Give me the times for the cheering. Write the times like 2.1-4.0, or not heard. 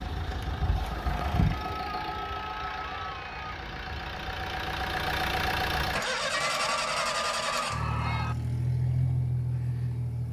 1.5-3.5, 6.3-8.3.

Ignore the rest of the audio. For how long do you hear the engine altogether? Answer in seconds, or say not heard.
10 s.